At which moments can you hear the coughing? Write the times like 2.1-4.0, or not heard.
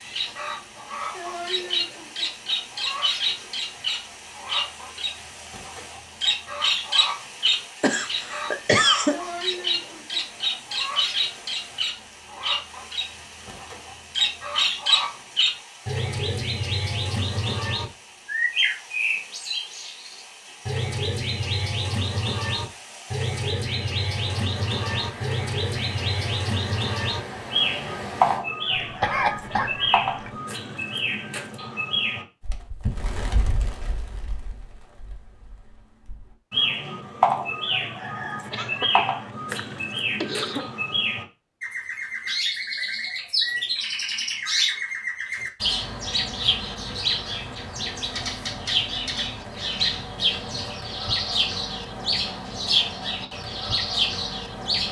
7.8-9.2, 28.8-30.4, 38.5-41.0.